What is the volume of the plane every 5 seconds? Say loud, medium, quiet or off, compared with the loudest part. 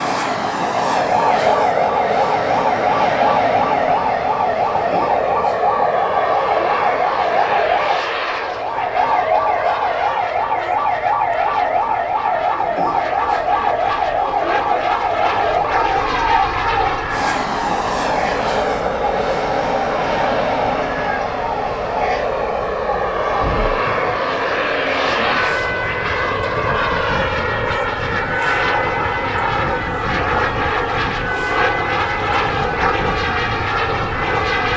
loud, loud, medium, loud, loud, loud, loud.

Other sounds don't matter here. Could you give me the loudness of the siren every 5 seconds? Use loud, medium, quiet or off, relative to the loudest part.
loud, loud, loud, loud, medium, medium, medium.